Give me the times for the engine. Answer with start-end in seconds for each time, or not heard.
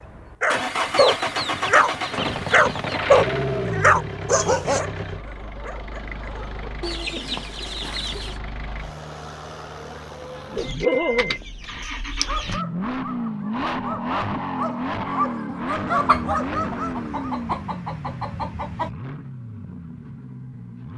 0.0-20.9.